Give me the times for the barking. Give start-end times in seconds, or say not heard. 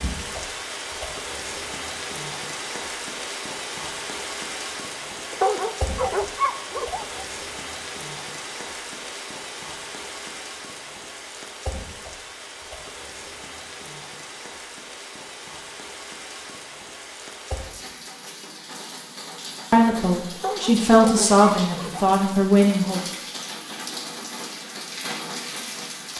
5.3-7.2, 20.4-22.1.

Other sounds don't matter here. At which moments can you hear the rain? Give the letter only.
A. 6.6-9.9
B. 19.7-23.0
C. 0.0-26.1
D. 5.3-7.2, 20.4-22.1
C.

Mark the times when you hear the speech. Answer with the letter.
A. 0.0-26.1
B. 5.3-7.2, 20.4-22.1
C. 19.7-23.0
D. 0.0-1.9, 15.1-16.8
C.